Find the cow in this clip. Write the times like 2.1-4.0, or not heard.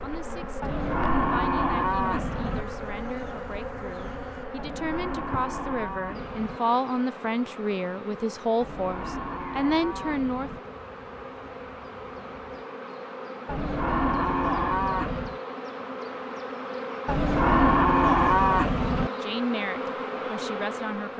0.6-2.6, 4.5-6.6, 8.6-10.6, 13.4-15.4, 17.1-19.1.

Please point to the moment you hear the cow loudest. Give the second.
18 s.